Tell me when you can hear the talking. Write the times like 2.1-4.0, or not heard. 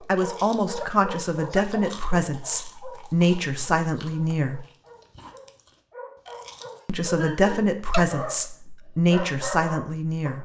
0.1-4.7, 6.8-10.3.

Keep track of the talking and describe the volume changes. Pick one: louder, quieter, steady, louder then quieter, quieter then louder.
steady.